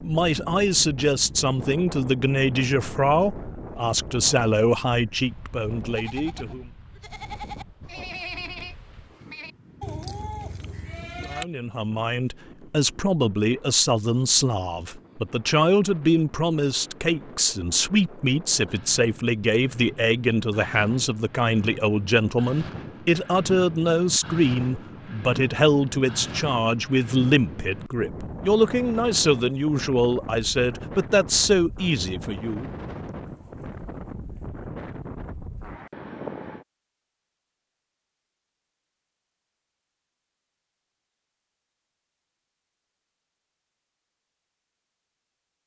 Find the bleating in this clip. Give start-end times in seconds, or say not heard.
5.9-11.4.